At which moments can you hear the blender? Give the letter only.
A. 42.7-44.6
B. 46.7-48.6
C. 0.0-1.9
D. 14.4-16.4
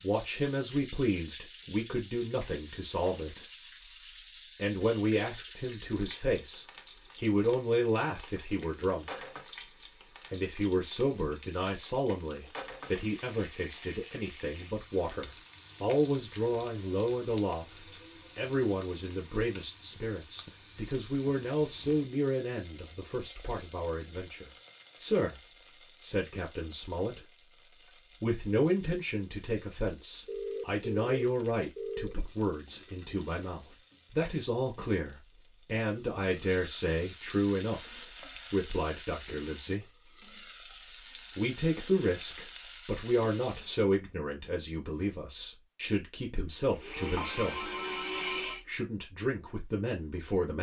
B.